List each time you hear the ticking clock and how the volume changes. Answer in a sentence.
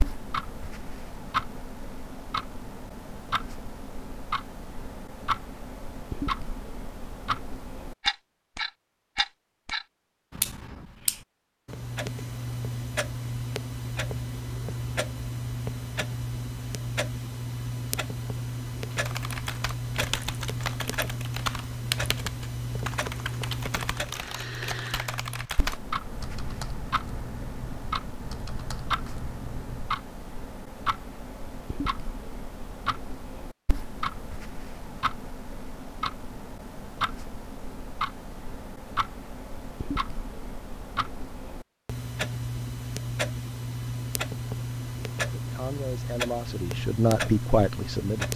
The ticking clock can be heard from 0.0 to 48.3 s, at a steady volume.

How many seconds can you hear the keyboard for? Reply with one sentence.
The keyboard can be heard for 11 seconds in total.